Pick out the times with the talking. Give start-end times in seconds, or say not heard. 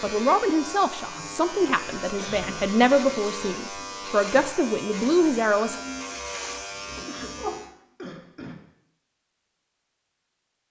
0.0-5.8.